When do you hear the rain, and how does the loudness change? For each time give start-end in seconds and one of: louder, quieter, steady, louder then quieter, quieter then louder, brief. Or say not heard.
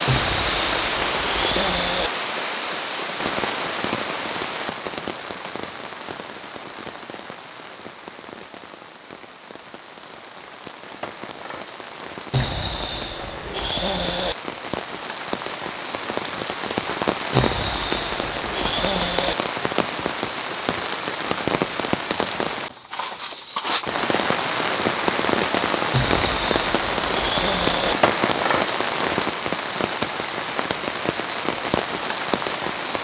0.0-32.9 quieter then louder.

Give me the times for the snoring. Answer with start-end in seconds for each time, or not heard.
0.1-2.1, 12.3-14.3, 17.3-19.4, 25.9-27.9.